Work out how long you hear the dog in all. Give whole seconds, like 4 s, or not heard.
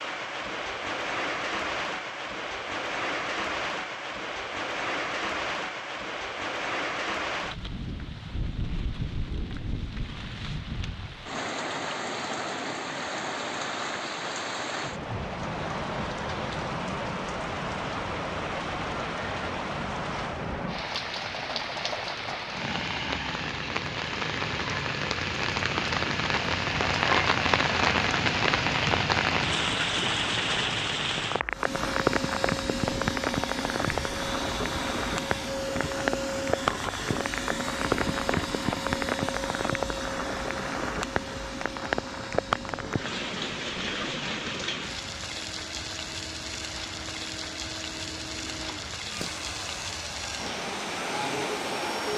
not heard.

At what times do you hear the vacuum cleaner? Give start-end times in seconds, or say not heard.
31.5-52.1.